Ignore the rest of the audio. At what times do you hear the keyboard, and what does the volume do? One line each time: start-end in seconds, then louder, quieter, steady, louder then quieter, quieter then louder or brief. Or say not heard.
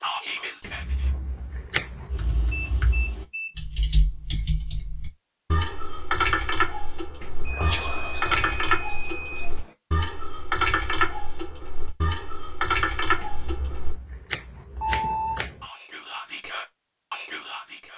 2.0-13.9 louder.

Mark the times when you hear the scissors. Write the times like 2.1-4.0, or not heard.
0.6-1.9, 7.2-8.4, 13.2-15.5.